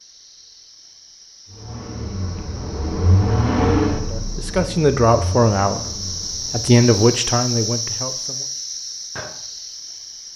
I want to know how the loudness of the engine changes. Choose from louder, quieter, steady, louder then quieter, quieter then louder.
louder then quieter.